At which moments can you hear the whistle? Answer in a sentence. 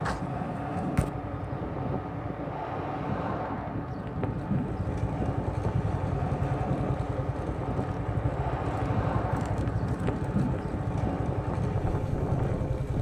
You can't hear the whistle here.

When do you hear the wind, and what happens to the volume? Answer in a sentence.
You can hear the wind from 0.0 to 12.9 s, at a steady volume.